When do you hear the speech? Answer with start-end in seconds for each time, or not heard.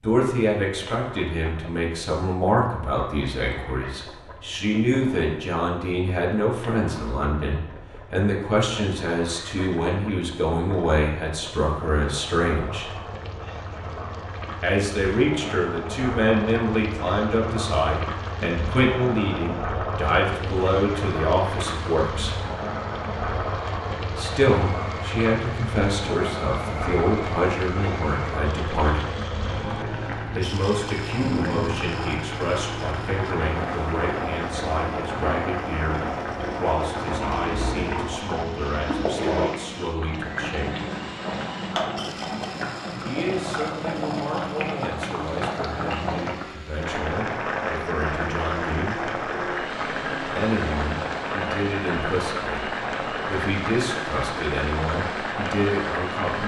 0.0-12.9, 14.6-22.4, 24.1-29.1, 30.4-40.8, 43.0-49.0, 50.4-56.4.